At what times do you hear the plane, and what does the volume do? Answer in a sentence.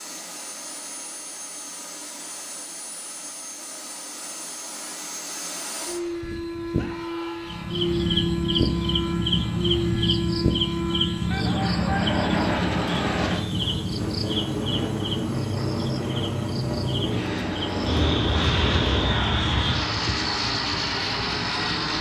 You can hear the plane from 0.0 to 21.9 s, getting louder.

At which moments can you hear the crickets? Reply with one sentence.
You can hear the crickets from 7.5 to 21.9 s.